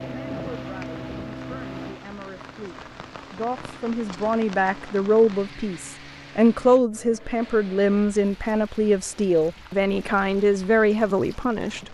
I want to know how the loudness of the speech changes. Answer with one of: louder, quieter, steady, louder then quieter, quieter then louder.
louder.